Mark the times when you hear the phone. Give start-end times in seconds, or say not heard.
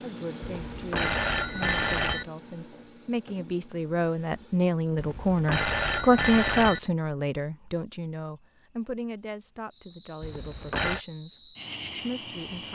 0.5-2.2, 5.0-6.8, 10.2-11.0.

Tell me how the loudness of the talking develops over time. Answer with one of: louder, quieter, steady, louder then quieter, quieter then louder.
louder then quieter.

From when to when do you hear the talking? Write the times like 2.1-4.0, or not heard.
0.0-12.7.